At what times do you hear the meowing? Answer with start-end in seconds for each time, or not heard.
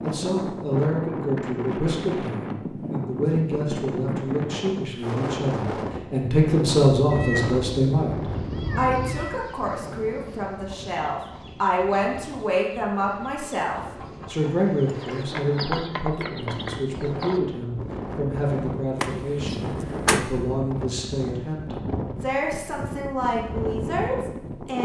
7.1-9.4.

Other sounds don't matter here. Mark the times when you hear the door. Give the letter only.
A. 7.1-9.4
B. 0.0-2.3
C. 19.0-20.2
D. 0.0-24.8
C.